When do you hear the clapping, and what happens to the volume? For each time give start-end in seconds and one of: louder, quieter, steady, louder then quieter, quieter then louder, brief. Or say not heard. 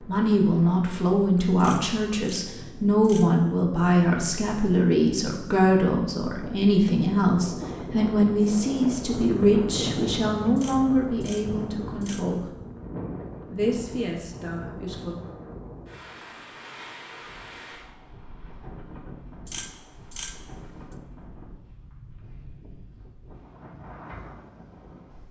not heard.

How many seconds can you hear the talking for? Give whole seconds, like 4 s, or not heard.
14 s.